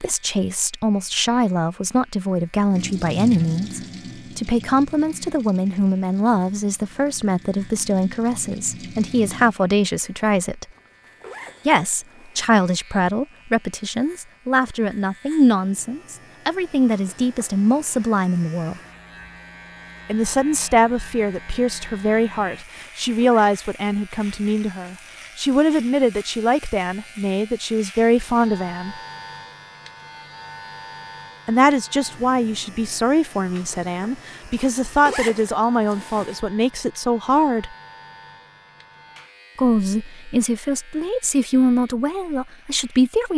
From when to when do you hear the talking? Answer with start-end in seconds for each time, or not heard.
0.0-10.7, 11.7-18.8, 20.1-28.9, 31.4-37.8, 39.5-43.3.